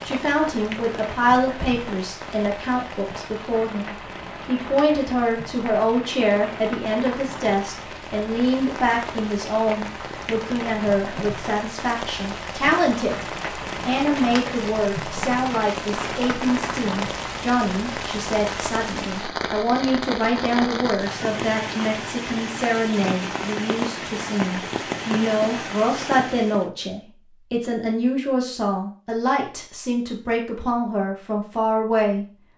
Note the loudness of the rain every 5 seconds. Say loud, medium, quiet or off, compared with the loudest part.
medium, medium, loud, loud, loud, loud, off.